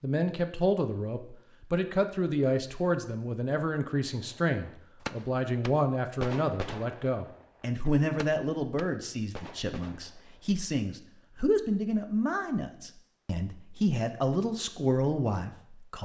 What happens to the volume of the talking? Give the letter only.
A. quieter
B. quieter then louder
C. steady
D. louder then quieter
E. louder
C.